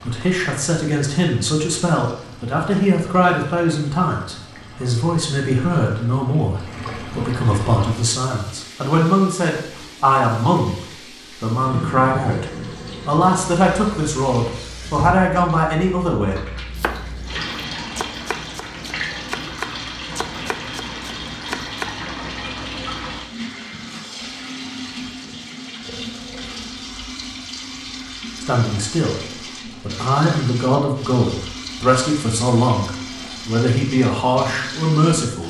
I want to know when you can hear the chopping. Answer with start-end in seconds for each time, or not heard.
16.8-21.9.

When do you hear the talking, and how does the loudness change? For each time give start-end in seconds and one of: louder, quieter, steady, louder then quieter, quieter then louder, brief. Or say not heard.
0.0-16.4 steady
28.4-35.4 louder.